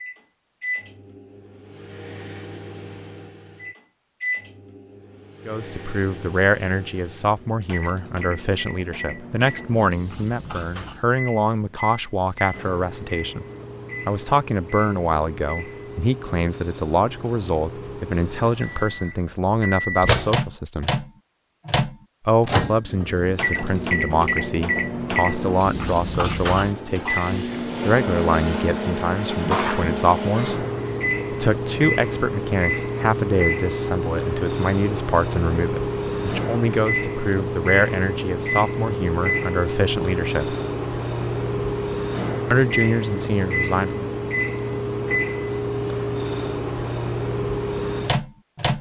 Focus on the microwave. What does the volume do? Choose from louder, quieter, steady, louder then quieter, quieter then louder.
louder.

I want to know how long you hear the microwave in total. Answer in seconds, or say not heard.
49 s.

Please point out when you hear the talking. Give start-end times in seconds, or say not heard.
5.5-13.4, 14.1-20.9, 22.2-30.6, 31.3-40.5, 42.5-44.0.